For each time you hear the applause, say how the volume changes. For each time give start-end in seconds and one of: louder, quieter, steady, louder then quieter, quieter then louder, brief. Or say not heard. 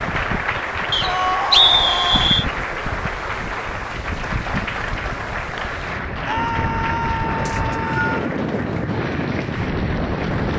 0.0-10.5 quieter.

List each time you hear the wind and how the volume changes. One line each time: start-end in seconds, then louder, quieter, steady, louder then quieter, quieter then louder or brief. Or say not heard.
0.0-10.5 louder.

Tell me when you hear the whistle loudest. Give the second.
2 s.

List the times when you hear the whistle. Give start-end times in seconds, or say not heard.
0.9-2.5, 7.5-8.2.